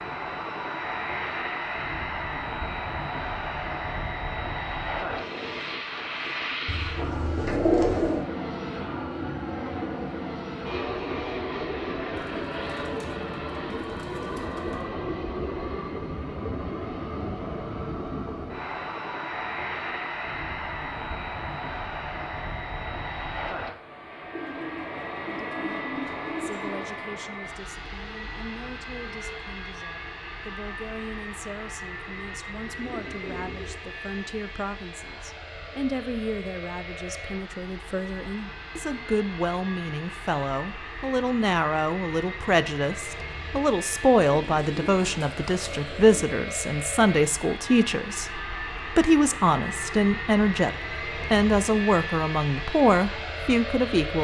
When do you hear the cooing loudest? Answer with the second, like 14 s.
8 s.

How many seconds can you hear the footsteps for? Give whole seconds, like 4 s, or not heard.
not heard.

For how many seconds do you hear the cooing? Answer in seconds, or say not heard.
10 s.